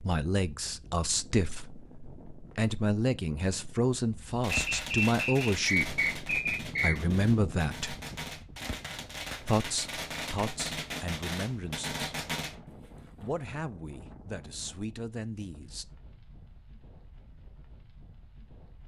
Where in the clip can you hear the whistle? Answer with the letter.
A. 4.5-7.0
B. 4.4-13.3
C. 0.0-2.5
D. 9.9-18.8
A.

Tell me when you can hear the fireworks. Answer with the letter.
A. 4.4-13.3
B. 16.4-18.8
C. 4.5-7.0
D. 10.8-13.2
A.